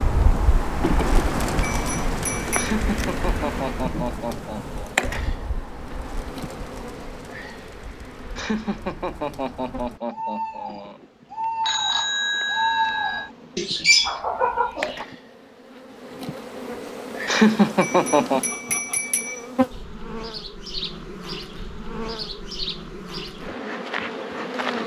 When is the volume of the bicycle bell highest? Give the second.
12 s.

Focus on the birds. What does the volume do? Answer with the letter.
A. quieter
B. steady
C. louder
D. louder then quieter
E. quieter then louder
E.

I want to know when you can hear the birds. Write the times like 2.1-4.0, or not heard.
0.0-15.1.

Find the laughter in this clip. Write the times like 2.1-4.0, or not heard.
2.5-4.8, 8.3-11.0, 17.2-18.4.